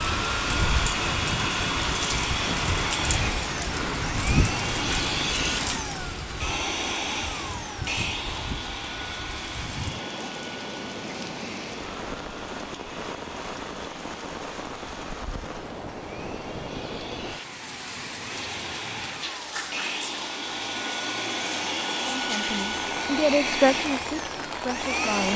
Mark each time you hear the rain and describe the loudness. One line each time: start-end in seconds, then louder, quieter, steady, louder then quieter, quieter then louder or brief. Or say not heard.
0.0-25.2 quieter.